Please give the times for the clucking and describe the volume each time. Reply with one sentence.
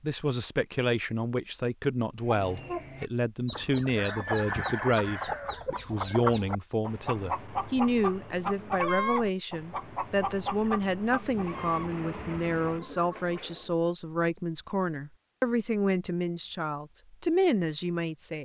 You can hear the clucking from 2.2 to 13.8 s, getting quieter.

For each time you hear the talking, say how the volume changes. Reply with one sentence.
The talking can be heard from 0.0 to 18.4 s, at a steady volume.